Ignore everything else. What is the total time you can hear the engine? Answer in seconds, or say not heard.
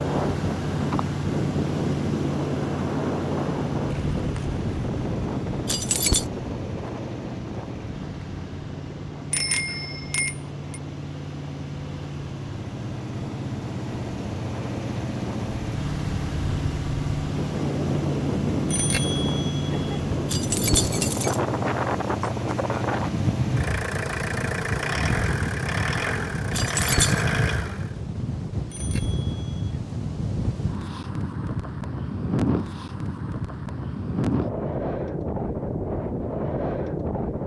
28 s.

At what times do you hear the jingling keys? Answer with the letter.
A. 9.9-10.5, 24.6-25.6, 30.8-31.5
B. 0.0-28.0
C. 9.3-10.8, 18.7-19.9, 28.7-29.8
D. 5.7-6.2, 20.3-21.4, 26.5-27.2
D.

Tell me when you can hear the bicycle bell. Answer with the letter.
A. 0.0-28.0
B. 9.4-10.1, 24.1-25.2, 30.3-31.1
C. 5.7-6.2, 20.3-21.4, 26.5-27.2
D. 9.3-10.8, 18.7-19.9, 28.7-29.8
D.